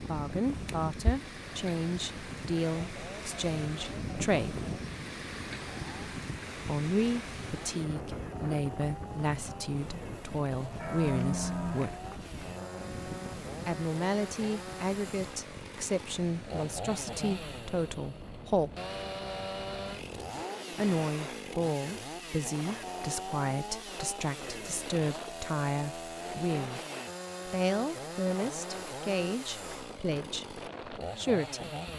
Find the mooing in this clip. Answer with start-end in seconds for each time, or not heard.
10.7-12.4.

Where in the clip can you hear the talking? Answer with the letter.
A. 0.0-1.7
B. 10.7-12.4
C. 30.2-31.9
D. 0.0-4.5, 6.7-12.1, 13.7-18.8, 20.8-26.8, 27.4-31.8
D.